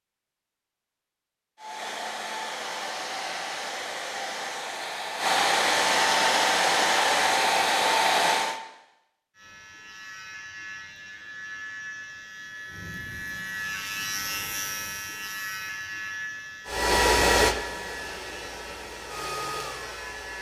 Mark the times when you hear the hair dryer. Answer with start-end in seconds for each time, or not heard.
1.6-8.6, 16.6-20.3.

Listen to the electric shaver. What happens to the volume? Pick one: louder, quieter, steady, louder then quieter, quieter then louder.
louder then quieter.